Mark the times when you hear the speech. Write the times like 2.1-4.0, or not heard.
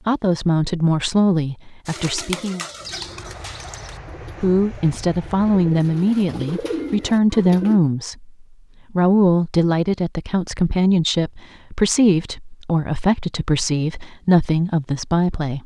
0.1-2.6, 4.4-15.6.